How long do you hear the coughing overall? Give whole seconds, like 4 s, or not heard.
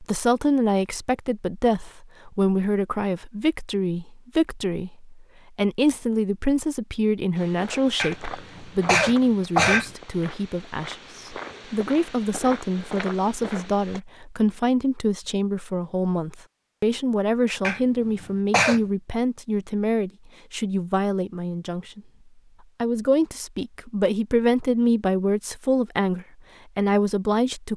3 s.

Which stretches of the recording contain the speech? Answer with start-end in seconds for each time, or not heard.
0.0-22.0, 22.8-27.7.